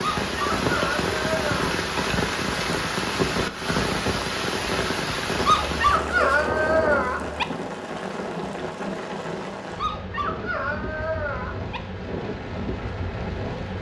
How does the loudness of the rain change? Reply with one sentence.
The loudness of the rain goes down.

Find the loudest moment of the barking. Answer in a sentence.
The loudest moment of the barking is at 6 seconds.